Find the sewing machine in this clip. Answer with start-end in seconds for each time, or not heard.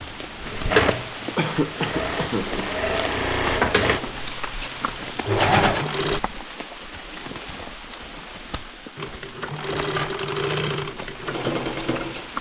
0.0-6.2, 8.9-12.3.